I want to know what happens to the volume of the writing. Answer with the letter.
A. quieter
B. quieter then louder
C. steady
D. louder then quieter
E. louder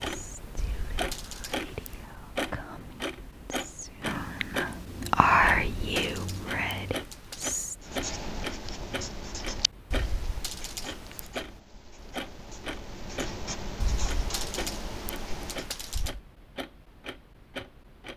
B.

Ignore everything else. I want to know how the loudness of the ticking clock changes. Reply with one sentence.
The volume of the ticking clock goes down.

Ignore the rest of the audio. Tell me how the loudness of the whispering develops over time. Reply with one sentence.
The volume of the whispering goes up, then down.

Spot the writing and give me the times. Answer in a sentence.
The writing can be heard from 7.8 to 15.8 s.